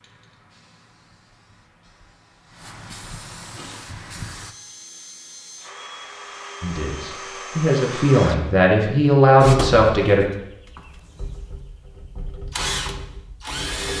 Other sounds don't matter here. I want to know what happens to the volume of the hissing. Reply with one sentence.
The loudness of the hissing goes up.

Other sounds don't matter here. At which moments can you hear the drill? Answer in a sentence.
You can hear the drill from 3.5 to 8.5 s and from 9.4 to 13.9 s.